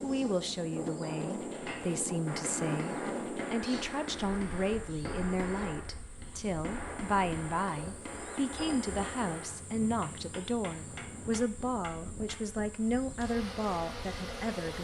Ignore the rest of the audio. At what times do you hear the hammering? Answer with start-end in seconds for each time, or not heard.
1.6-12.5.